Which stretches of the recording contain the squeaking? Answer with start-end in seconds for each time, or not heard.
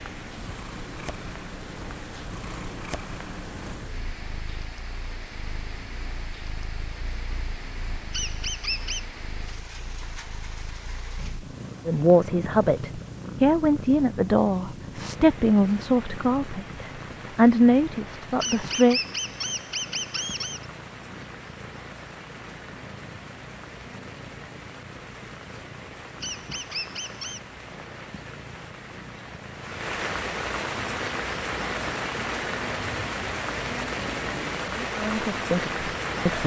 8.1-9.1, 18.4-20.6, 26.2-27.4.